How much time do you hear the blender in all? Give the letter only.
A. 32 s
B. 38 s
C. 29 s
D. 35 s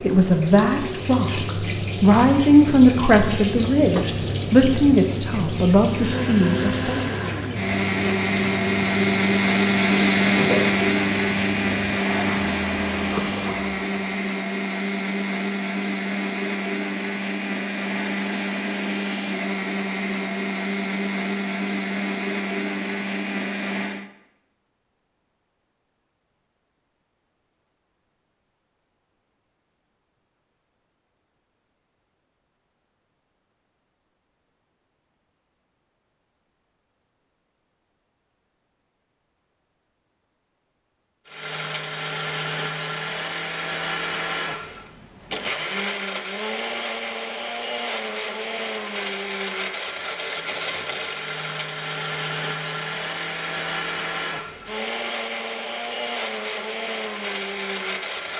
D.